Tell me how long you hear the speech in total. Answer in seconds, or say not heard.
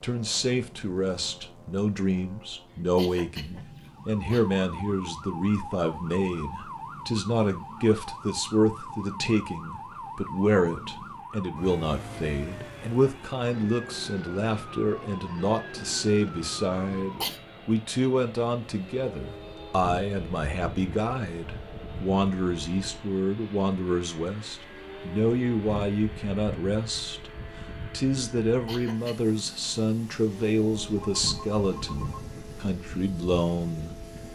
34 s.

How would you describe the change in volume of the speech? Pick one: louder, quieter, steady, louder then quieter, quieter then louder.
steady.